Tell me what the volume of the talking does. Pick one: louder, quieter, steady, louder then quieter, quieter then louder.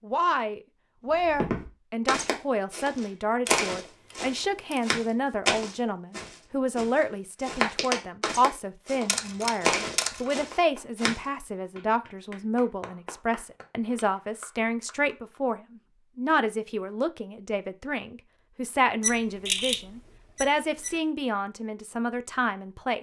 steady.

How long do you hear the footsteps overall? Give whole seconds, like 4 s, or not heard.
10 s.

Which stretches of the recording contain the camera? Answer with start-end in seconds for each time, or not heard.
3.5-4.8, 9.1-10.2, 19.0-20.9.